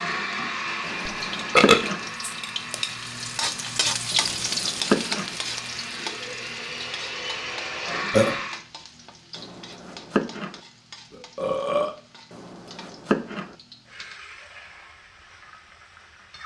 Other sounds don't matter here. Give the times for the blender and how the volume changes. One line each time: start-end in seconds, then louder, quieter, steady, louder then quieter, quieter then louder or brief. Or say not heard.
0.0-8.6 quieter then louder.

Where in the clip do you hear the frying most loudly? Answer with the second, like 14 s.
4 s.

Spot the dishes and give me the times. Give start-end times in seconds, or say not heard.
not heard.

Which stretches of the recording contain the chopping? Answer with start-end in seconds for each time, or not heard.
0.8-2.0, 4.1-5.3, 9.3-10.6, 12.3-13.6.